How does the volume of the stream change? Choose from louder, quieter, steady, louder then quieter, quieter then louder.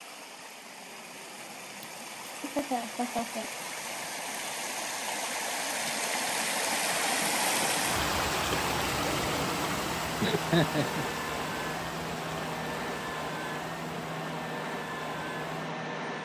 louder then quieter.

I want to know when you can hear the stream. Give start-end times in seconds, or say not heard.
0.0-16.2.